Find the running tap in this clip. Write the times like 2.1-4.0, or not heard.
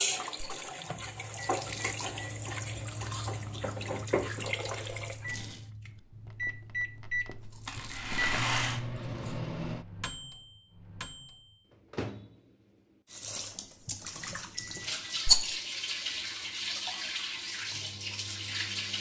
0.0-5.7, 13.1-18.9.